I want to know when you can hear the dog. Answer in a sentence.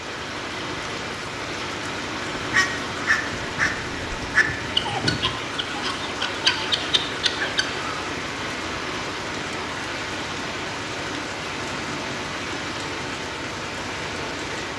The dog can't be heard in this clip.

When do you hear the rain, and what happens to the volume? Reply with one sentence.
The rain can be heard from 0.0 to 14.7 s, at a steady volume.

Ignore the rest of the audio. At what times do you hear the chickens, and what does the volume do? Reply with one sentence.
You can hear the chickens from 2.4 to 7.9 s, at a steady volume.